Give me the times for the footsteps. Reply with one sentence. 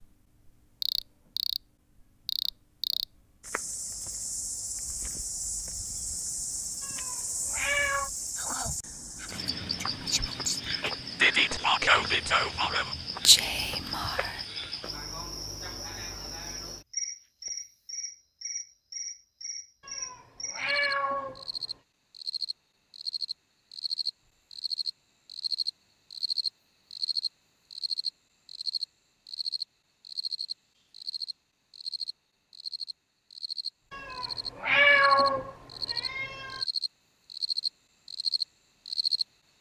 You can't hear the footsteps here.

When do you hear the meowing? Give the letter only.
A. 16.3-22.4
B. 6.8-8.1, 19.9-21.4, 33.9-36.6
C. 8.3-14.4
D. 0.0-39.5
B.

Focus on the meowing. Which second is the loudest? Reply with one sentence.
The loudest moment of the meowing is at 35 seconds.